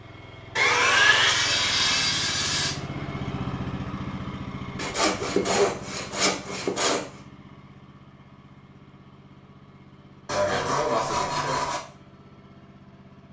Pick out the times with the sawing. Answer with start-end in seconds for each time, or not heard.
0.6-2.8, 4.8-7.0, 10.2-11.8.